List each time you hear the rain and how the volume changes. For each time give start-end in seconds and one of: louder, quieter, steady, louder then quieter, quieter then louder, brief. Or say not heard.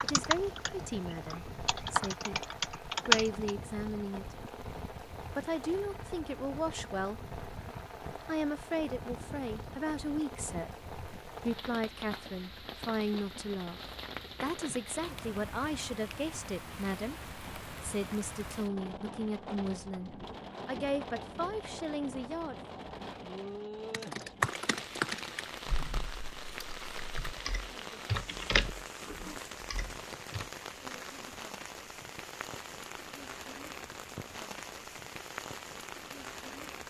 0.0-36.8 steady.